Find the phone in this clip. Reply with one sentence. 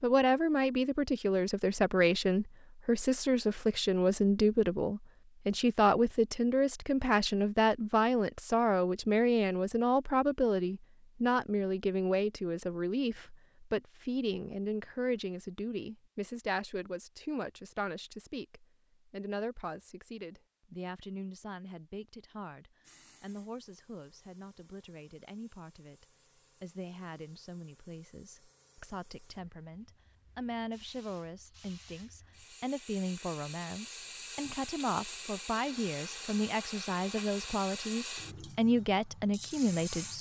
You can't hear the phone here.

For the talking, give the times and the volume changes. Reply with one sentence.
The talking can be heard from 0.0 to 40.1 s, getting quieter then louder.